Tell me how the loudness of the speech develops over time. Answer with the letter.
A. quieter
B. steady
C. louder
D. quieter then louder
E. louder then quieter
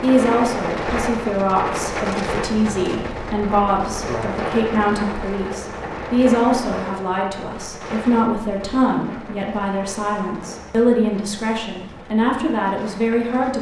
B.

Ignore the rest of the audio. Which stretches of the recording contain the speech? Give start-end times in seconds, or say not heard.
0.0-13.5.